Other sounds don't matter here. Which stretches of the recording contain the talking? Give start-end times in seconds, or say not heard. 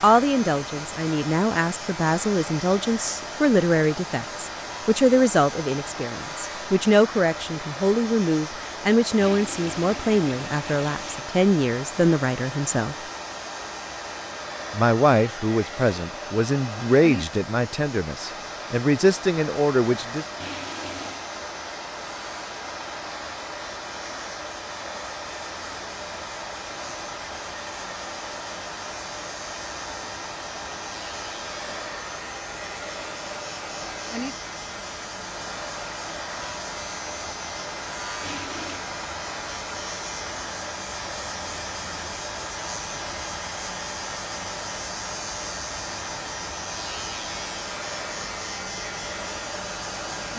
0.0-12.9, 14.7-20.2.